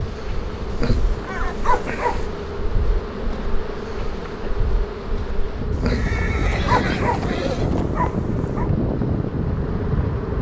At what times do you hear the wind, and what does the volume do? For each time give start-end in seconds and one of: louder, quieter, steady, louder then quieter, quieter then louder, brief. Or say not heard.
0.0-10.3 louder.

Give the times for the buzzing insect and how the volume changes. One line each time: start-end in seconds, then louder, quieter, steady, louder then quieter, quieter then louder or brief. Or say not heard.
0.0-10.3 steady.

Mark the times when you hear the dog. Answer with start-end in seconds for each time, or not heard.
0.7-2.3, 5.8-8.7.